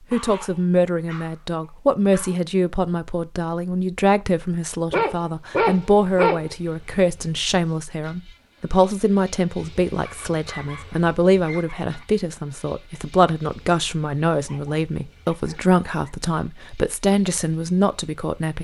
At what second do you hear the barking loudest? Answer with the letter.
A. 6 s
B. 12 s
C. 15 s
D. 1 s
A.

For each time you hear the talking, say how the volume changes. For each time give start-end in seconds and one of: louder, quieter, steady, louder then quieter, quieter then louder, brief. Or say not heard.
0.1-18.6 steady.